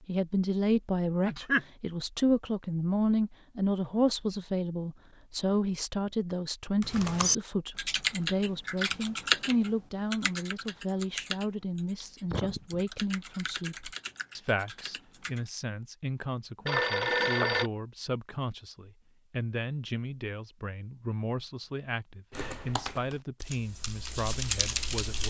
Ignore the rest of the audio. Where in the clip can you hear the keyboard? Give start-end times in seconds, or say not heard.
6.8-15.5, 22.3-25.2.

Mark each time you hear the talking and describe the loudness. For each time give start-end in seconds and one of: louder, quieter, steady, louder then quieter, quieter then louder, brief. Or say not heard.
0.1-25.2 quieter.